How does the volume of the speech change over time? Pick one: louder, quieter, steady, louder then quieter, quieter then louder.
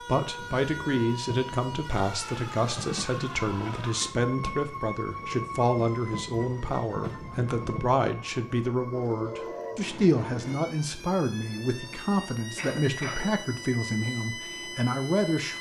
steady.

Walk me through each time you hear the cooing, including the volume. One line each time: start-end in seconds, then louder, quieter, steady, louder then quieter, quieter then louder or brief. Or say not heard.
not heard.